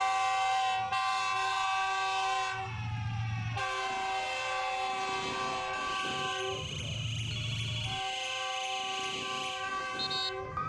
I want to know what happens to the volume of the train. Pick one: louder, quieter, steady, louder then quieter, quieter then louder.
quieter.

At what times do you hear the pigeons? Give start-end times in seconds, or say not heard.
not heard.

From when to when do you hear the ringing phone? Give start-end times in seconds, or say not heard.
7.2-8.2.